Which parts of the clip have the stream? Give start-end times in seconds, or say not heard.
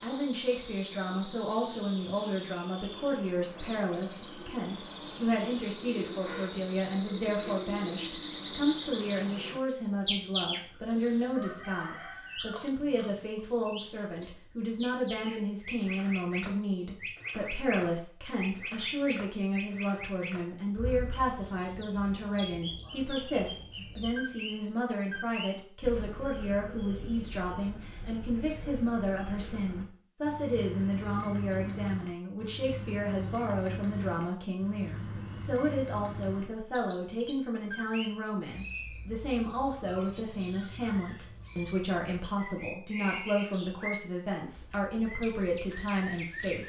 not heard.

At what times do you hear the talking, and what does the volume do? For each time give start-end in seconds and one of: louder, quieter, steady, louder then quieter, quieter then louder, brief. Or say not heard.
0.0-46.6 steady.